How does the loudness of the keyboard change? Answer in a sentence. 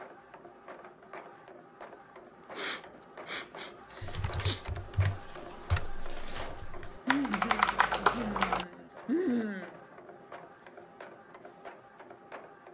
The volume of the keyboard goes down, then up.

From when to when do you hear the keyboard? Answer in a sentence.
You can hear the keyboard from 4.0 to 8.7 s.